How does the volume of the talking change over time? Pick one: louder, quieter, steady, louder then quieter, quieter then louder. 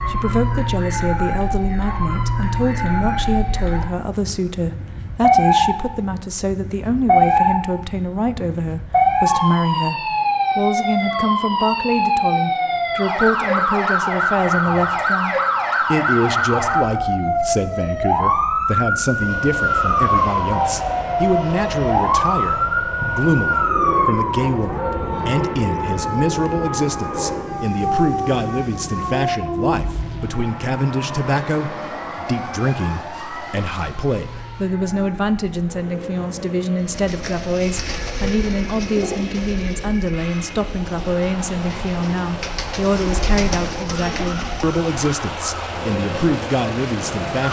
steady.